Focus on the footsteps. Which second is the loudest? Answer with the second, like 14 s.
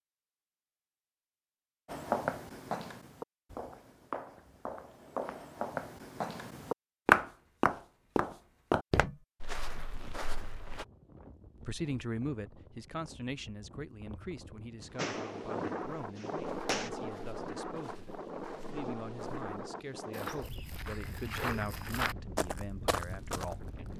7 s.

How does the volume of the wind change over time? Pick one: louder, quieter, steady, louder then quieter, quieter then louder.
louder then quieter.